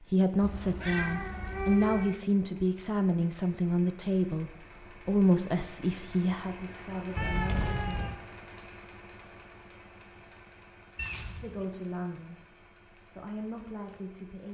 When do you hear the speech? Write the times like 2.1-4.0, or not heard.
0.0-8.1, 11.4-12.4, 13.1-14.4.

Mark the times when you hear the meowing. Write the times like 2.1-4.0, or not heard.
0.4-2.1, 7.2-8.2, 10.9-11.7.